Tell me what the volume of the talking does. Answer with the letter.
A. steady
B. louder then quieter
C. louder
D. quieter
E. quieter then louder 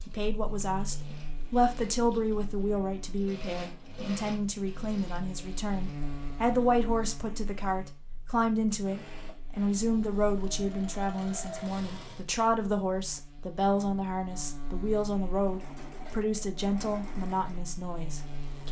A.